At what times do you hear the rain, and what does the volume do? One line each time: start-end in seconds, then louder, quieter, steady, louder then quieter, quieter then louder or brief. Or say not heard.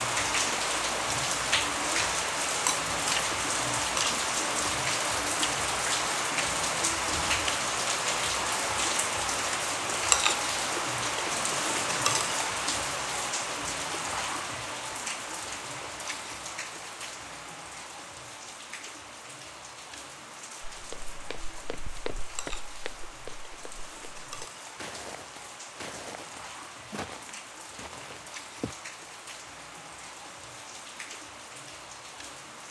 0.0-32.6 quieter.